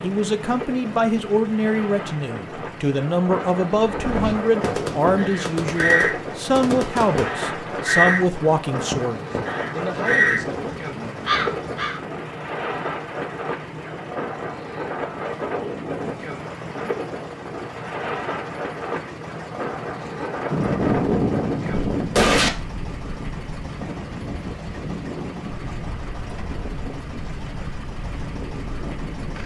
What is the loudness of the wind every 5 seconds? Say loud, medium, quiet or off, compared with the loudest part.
loud, loud, loud, loud, loud, medium.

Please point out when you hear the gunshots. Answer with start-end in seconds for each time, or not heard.
4.6-7.4, 20.5-22.5.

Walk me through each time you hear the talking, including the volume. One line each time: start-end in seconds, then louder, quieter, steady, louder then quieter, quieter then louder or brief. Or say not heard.
0.0-11.3 quieter.